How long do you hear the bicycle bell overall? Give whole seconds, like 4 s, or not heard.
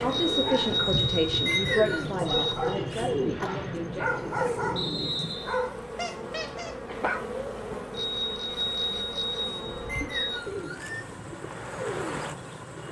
5 s.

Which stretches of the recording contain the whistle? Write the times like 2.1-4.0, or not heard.
1.4-2.1, 4.8-5.6, 9.8-11.1.